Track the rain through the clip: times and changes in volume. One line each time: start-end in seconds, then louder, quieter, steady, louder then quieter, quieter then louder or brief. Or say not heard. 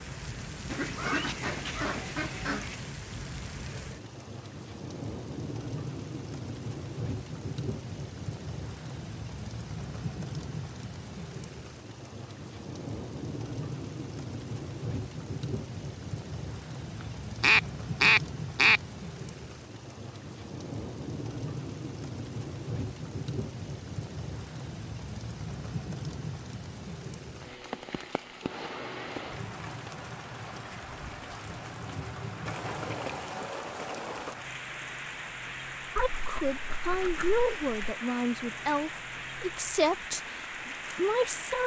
0.0-41.6 steady.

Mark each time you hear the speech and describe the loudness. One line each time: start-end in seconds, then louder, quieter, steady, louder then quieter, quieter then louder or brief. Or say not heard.
36.0-41.6 steady.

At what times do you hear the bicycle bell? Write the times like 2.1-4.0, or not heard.
not heard.